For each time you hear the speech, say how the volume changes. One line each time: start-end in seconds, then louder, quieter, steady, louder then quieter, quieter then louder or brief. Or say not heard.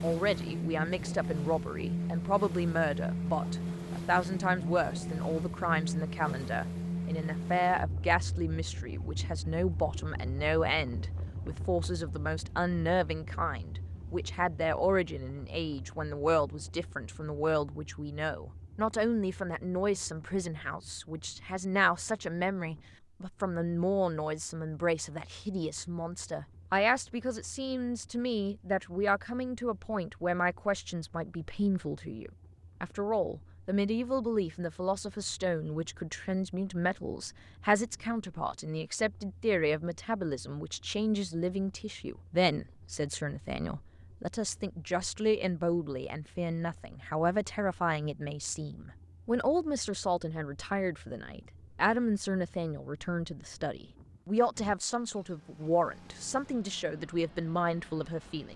0.0-58.5 steady.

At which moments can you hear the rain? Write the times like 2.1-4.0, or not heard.
not heard.